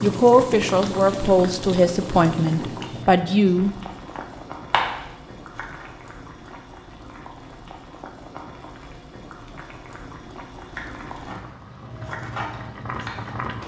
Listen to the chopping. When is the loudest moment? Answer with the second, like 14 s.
5 s.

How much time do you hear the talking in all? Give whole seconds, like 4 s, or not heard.
4 s.